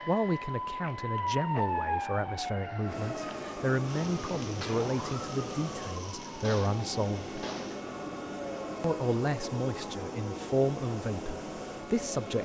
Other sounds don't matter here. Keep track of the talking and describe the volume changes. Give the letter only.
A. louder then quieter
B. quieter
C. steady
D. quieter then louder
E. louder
C.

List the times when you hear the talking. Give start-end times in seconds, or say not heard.
0.1-7.3, 8.8-12.4.